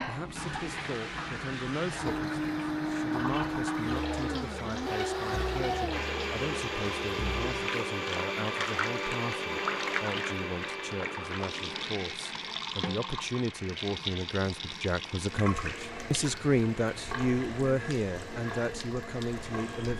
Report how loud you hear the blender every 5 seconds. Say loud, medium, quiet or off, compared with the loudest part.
loud, loud, medium, quiet.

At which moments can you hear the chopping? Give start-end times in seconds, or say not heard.
not heard.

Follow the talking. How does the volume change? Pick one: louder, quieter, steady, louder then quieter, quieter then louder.
louder.